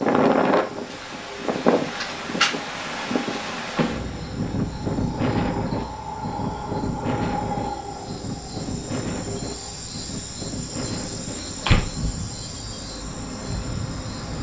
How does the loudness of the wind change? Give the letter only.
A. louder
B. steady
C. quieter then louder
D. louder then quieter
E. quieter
E.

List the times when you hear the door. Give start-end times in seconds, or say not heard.
3.8-4.5, 11.3-11.9.